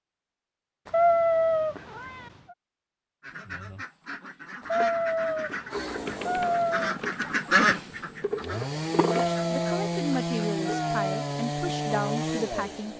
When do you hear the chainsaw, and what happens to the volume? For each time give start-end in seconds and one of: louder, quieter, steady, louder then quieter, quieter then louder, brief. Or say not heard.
5.7-12.9 louder.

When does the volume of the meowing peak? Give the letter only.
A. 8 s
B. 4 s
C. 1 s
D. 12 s
C.